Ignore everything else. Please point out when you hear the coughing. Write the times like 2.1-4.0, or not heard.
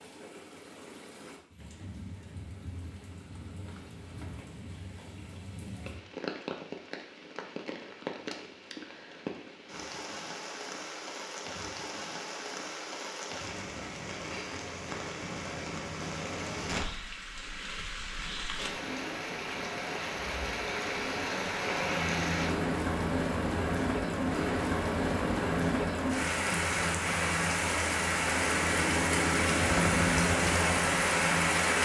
not heard.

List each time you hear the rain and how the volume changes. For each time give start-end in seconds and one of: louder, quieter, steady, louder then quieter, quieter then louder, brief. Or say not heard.
0.0-31.8 louder.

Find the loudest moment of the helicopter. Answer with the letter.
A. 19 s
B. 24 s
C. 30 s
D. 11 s
C.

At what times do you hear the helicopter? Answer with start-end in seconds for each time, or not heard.
21.8-31.8.